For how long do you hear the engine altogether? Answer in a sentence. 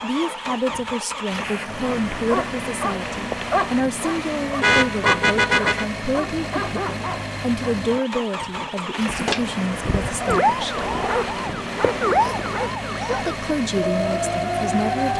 You can hear the engine for 15 seconds altogether.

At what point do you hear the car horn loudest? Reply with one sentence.
The loudest moment of the car horn is at 5 seconds.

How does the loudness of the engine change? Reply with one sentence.
The volume of the engine stays about the same.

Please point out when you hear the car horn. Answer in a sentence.
You can hear the car horn from 4.6 to 5.8 s and from 11.8 to 12.5 s.